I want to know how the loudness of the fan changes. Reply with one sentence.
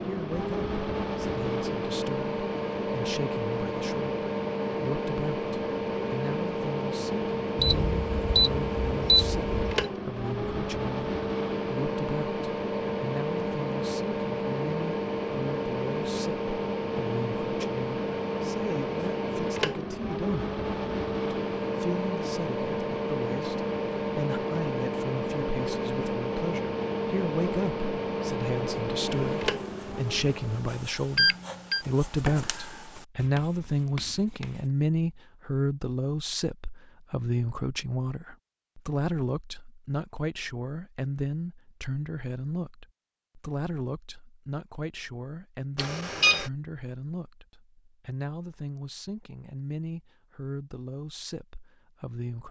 The loudness of the fan stays about the same.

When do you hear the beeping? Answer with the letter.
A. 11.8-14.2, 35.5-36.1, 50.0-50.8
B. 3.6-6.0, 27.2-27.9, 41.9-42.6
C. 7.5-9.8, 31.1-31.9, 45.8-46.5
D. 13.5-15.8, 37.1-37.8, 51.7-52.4
C.